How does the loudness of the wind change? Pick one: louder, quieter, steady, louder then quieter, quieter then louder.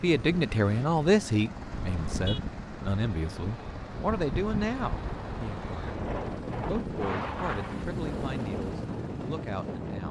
louder.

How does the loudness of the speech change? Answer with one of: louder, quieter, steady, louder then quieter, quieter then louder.
quieter.